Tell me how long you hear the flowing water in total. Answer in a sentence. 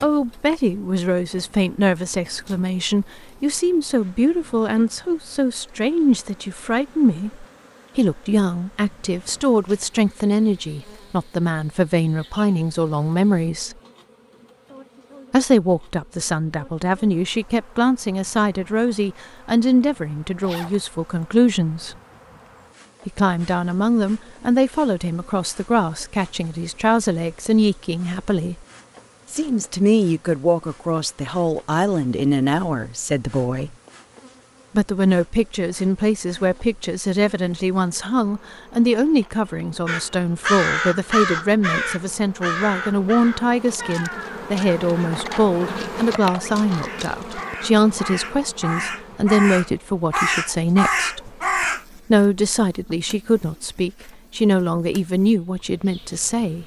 The flowing water can't be heard in this clip.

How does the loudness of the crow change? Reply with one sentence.
The volume of the crow goes down, then up.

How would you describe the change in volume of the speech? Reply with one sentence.
The volume of the speech stays about the same.